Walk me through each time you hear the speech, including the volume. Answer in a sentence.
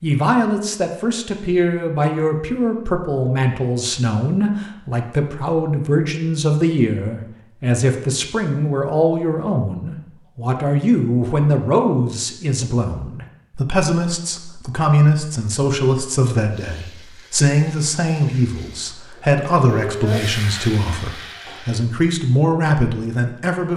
You can hear the speech from 0.0 to 23.7 s, at a steady volume.